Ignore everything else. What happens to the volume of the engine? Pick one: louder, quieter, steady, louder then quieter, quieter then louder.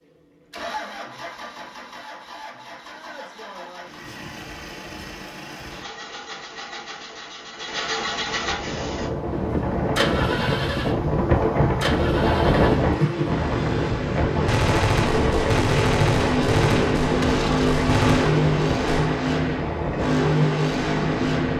louder.